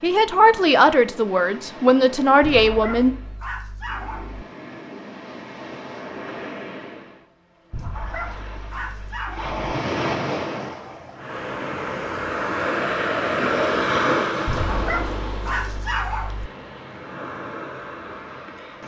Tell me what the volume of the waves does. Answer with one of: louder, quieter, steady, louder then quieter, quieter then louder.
louder then quieter.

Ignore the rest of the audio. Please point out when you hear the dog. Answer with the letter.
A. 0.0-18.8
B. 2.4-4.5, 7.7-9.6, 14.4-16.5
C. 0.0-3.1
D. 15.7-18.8
B.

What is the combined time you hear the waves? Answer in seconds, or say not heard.
19 s.